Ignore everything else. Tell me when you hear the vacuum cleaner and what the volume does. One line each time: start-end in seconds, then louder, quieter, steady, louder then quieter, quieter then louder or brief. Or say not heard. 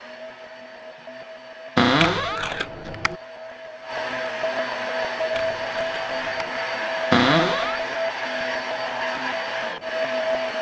0.0-10.5 louder.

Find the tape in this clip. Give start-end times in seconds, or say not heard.
1.9-3.1, 5.3-6.5.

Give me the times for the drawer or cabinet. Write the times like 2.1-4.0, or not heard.
1.8-2.5, 7.1-7.8.